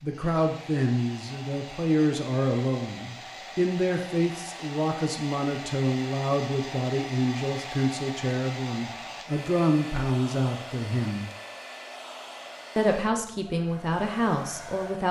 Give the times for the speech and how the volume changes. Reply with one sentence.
The speech can be heard from 0.0 to 11.2 s, at a steady volume; and briefly from 12.8 to 15.0 s.